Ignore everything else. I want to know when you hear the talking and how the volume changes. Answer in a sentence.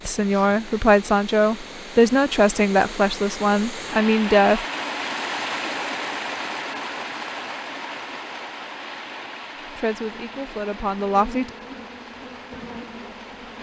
The talking can be heard from 0.1 to 4.7 s, at a steady volume; and briefly from 9.8 to 11.5 s.